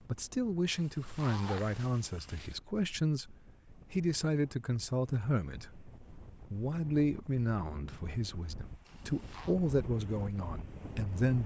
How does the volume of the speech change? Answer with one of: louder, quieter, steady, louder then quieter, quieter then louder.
steady.